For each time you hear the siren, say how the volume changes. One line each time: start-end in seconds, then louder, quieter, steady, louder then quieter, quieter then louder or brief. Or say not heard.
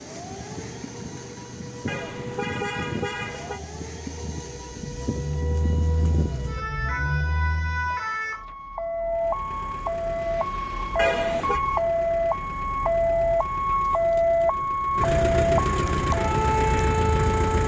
0.0-17.6 louder.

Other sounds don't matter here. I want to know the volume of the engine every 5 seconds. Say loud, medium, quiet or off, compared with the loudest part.
quiet, medium, quiet, loud.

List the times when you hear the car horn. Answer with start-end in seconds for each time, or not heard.
1.9-3.6, 10.9-11.6.